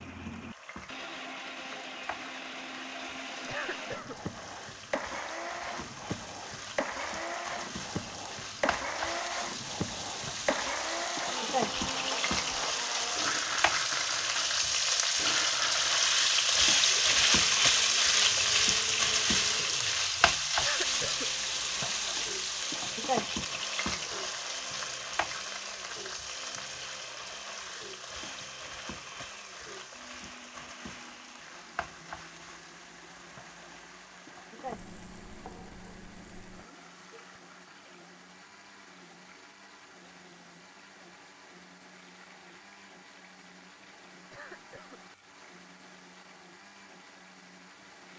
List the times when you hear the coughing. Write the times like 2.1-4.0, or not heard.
3.5-4.2, 20.6-21.3, 44.3-45.0.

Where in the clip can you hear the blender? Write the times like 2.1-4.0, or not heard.
0.0-48.1.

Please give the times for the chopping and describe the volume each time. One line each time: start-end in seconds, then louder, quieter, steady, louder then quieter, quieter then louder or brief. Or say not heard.
not heard.